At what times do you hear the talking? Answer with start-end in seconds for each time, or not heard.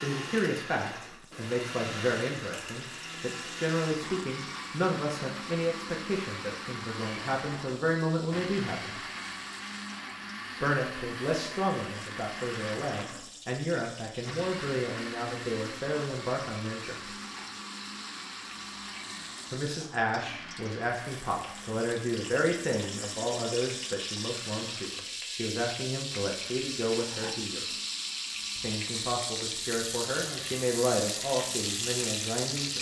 0.0-9.0, 10.6-17.1, 19.5-27.6, 28.6-32.7.